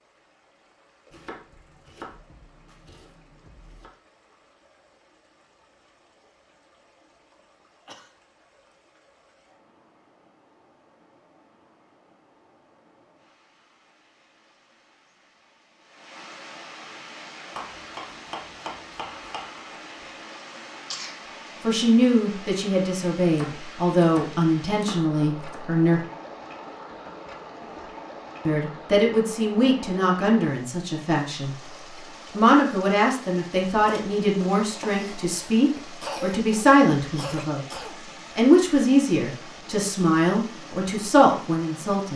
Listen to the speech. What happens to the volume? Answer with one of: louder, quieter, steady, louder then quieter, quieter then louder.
steady.